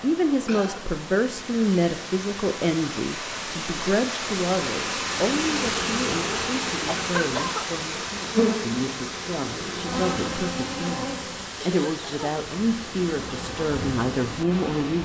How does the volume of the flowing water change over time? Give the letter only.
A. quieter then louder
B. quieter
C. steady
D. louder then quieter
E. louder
D.